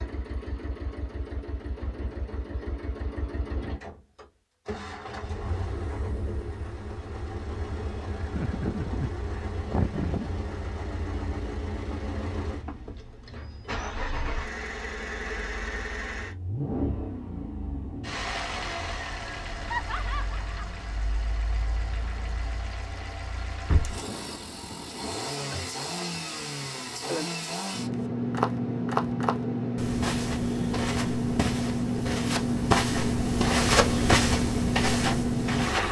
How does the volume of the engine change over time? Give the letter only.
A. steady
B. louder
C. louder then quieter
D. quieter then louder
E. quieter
B.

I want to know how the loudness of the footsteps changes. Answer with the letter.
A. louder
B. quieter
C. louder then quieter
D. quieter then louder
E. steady
D.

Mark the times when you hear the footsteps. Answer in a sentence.
The footsteps can be heard from 27.9 to 35.8 s.